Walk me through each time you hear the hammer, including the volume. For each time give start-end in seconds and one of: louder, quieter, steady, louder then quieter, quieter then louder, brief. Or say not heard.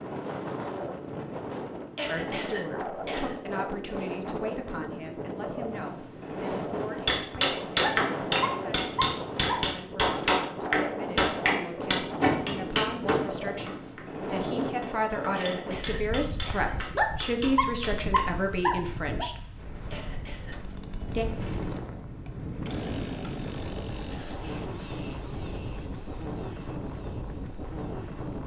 7.0-18.3 quieter.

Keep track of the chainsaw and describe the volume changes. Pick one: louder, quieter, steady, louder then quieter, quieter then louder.
quieter.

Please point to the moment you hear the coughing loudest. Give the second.
2 s.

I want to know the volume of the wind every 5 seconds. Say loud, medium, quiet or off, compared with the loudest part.
loud, loud, loud, medium, loud, loud.